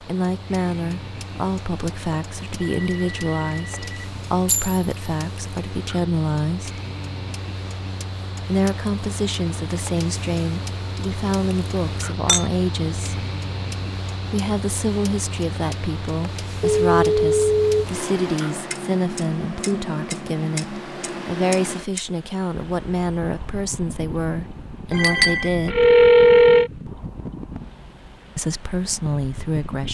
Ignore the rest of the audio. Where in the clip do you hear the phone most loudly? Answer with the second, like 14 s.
26 s.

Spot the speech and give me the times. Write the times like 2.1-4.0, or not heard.
0.0-6.8, 8.4-13.2, 14.3-25.9, 28.4-29.8.